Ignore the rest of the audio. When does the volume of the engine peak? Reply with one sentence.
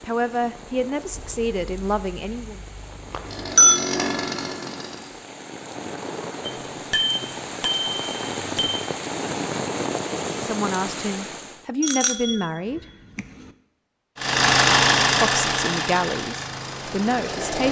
The volume of the engine peaks at 15 seconds.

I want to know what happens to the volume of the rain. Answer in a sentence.
The volume of the rain goes up.